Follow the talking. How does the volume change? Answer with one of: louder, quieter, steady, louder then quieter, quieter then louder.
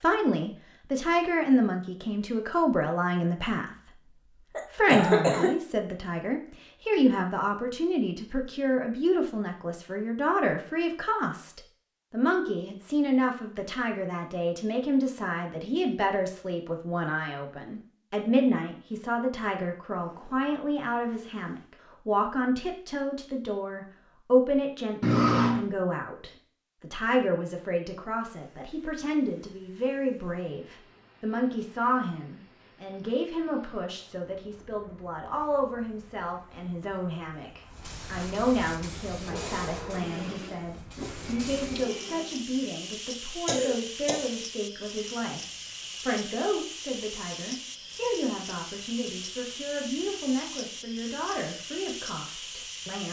quieter.